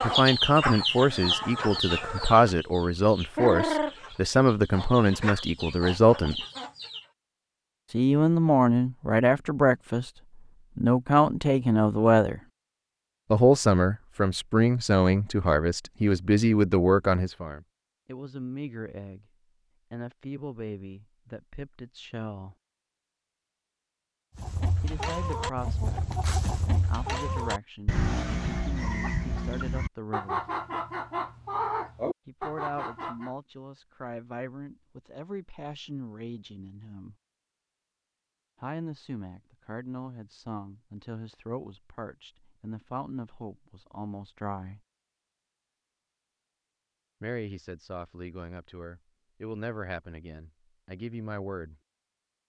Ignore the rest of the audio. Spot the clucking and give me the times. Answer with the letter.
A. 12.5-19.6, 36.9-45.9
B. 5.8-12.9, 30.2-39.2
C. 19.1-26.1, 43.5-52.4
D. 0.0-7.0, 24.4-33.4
D.